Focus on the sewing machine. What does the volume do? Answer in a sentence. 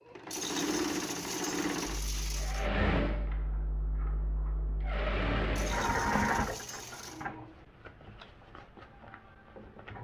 The loudness of the sewing machine goes down.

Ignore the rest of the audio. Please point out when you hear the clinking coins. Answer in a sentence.
The clinking coins can be heard from 0.3 to 2.7 s and from 5.5 to 7.2 s.